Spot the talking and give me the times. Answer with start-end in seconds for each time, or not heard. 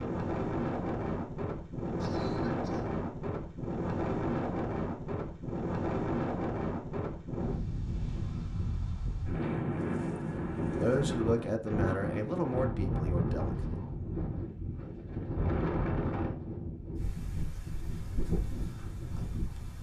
10.8-13.8.